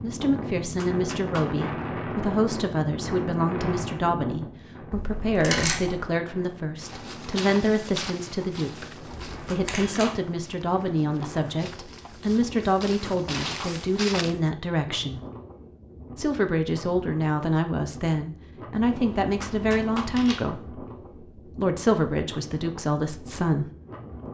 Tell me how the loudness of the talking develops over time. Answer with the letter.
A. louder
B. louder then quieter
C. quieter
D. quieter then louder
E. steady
E.